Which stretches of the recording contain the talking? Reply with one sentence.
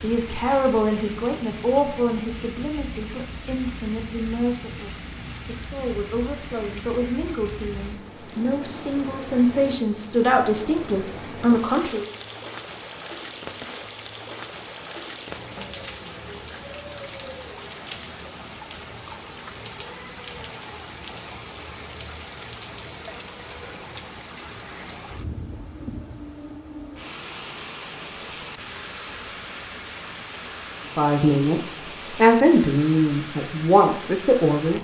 You can hear the talking from 0.0 to 12.1 s and from 30.9 to 34.7 s.